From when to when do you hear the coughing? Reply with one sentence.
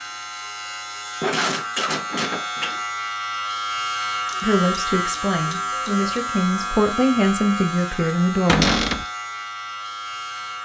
The coughing can be heard from 1.2 to 2.8 s.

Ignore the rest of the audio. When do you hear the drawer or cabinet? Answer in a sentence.
The drawer or cabinet can be heard from 8.4 to 9.1 s.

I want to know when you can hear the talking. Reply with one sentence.
The talking can be heard from 4.4 to 8.7 s.